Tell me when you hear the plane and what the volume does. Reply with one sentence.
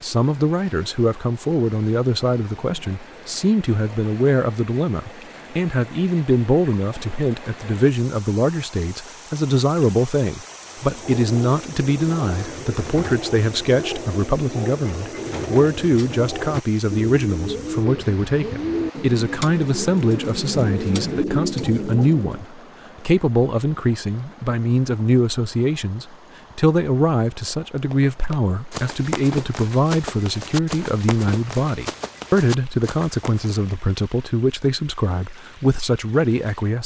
The plane can't be heard in this clip.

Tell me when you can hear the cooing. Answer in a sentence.
The cooing can be heard from 10.7 to 22.4 s.